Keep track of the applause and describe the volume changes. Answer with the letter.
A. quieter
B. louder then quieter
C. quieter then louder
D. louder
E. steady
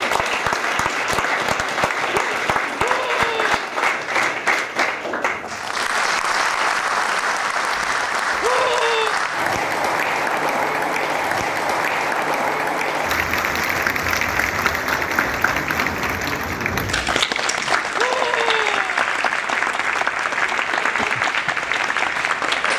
E.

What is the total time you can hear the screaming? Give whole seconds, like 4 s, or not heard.
3 s.